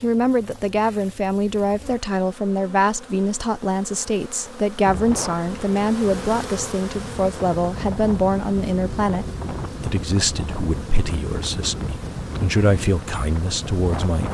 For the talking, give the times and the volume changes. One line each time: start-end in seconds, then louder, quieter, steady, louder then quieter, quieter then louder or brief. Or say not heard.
0.0-14.2 steady.